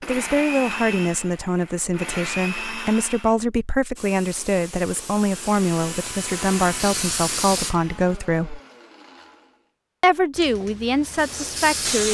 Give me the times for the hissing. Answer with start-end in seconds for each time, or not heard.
4.0-8.2, 10.3-12.0.